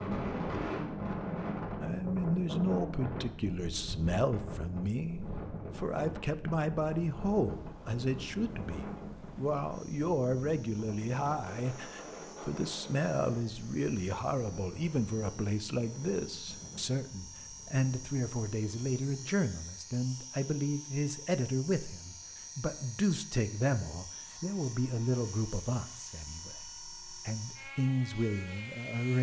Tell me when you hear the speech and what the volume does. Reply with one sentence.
The speech can be heard from 1.8 to 29.1 s, at a steady volume.